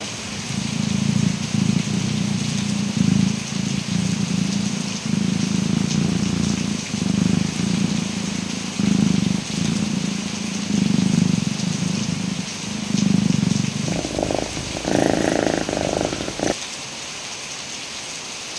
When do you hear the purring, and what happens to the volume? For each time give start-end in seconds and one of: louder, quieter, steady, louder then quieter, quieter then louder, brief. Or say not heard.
0.0-16.6 steady.